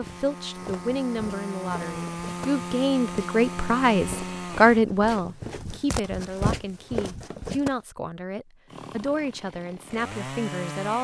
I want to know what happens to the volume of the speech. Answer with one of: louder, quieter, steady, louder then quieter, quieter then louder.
louder then quieter.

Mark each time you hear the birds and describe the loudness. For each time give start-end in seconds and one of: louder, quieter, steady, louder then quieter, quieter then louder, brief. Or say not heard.
not heard.